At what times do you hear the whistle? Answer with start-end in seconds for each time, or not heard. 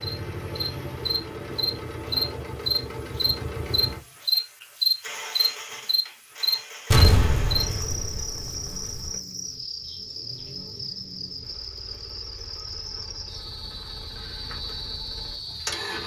not heard.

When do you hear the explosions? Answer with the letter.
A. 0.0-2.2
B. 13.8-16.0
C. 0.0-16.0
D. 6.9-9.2
D.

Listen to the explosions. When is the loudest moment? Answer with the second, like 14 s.
7 s.